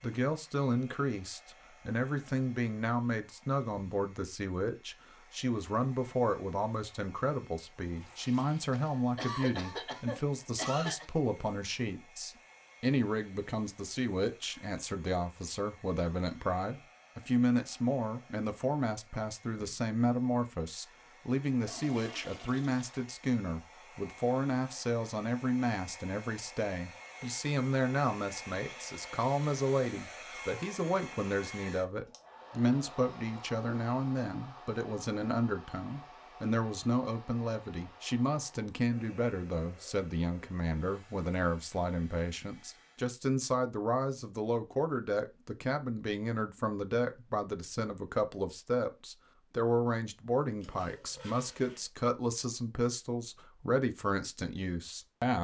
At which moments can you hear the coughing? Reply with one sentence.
The coughing can be heard from 8.9 to 11.1 s.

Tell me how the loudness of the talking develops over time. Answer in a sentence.
The loudness of the talking stays about the same.